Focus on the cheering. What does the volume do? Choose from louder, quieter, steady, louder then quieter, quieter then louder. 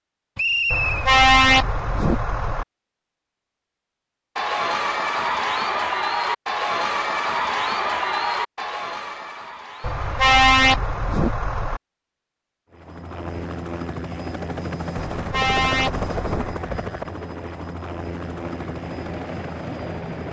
quieter.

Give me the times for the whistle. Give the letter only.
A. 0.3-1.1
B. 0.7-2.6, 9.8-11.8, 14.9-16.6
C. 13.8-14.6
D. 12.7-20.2
A.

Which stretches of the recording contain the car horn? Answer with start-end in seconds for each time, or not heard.
0.7-2.6, 9.8-11.8, 14.9-16.6.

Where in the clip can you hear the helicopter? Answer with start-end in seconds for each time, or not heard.
12.7-20.2.